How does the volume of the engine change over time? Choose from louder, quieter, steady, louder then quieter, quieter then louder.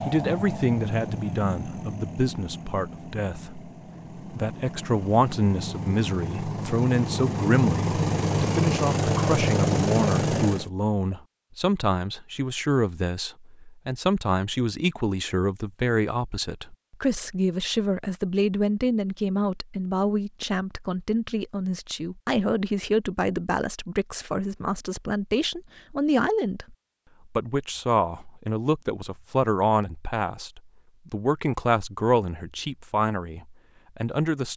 quieter then louder.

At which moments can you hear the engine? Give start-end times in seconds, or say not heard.
0.0-10.7.